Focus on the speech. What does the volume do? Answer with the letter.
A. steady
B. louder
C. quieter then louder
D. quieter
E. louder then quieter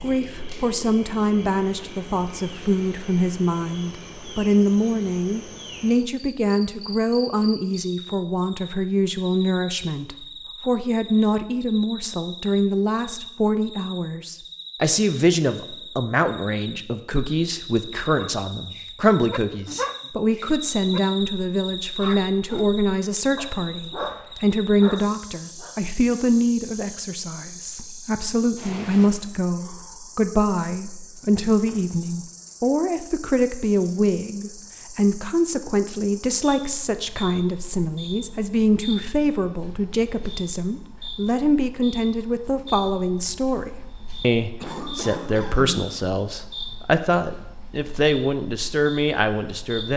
A.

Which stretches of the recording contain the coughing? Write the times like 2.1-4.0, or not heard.
44.6-45.9.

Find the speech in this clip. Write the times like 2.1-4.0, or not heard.
0.0-49.9.